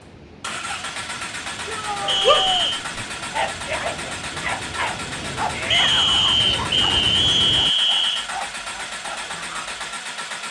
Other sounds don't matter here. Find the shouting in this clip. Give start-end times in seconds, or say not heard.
1.6-2.7, 5.5-6.3.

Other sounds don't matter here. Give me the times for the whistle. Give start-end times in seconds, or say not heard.
2.0-2.8, 5.7-8.3.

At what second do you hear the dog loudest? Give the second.
2 s.